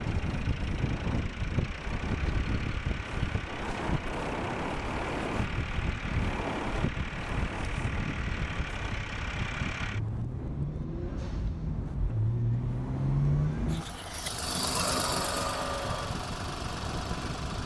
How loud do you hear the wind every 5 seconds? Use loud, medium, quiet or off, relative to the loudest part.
loud, loud, medium, medium.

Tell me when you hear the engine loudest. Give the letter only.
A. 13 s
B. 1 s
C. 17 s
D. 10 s
A.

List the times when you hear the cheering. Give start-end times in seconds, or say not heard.
14.7-16.2.